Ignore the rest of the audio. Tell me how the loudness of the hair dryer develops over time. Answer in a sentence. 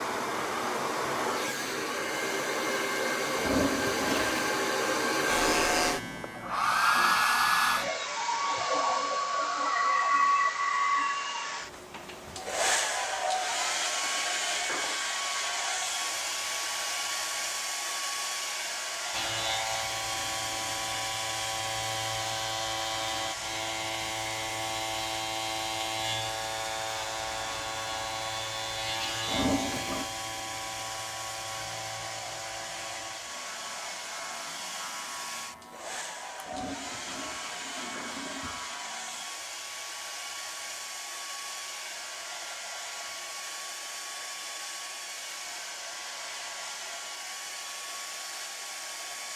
The volume of the hair dryer goes down.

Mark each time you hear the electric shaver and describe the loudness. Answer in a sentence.
The electric shaver can be heard briefly from 5.2 to 8.0 s; and from 19.1 to 39.3 s, getting quieter.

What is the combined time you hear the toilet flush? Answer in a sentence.
You can hear the toilet flush for 4 seconds altogether.